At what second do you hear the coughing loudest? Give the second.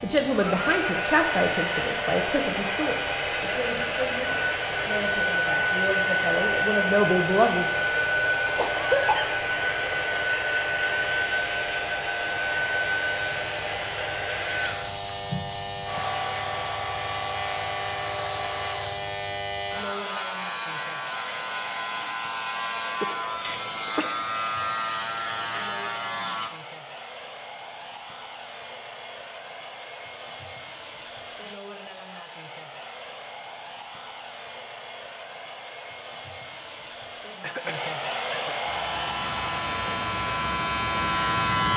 9 s.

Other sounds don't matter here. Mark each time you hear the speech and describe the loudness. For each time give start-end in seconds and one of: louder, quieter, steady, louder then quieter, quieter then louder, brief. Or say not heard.
0.0-7.7 quieter then louder.